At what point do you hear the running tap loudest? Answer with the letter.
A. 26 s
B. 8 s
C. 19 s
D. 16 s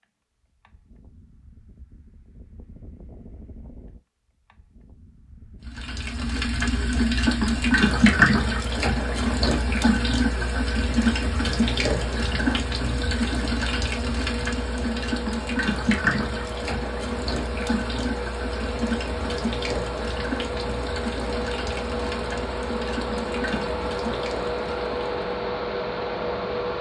B.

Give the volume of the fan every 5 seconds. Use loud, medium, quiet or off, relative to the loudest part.
quiet, quiet, medium, medium, loud, loud.